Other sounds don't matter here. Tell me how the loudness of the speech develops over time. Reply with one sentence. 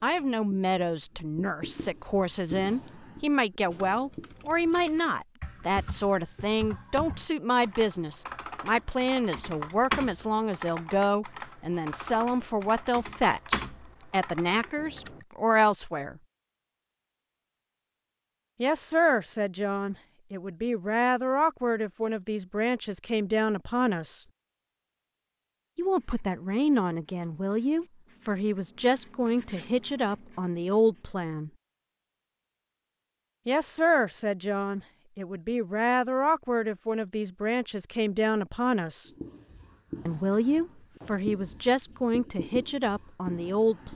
The volume of the speech stays about the same.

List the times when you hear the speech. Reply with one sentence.
You can hear the speech from 0.0 to 16.2 s, from 18.6 to 24.2 s, from 25.8 to 31.5 s, from 33.5 to 39.1 s and from 40.0 to 43.9 s.